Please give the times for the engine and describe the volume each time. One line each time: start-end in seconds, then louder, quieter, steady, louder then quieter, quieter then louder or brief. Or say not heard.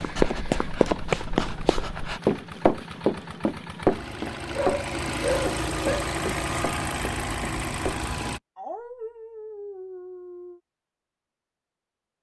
0.0-8.4 louder.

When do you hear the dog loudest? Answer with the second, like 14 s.
5 s.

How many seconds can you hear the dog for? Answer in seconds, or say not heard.
6 s.